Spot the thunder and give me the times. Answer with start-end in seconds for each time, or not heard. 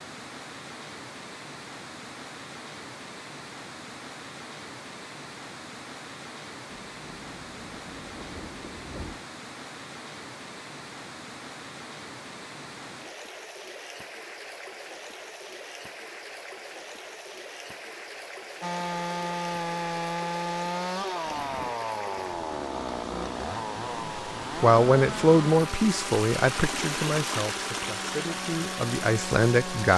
6.7-9.2, 21.2-21.8.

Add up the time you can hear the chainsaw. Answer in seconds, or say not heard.
11 s.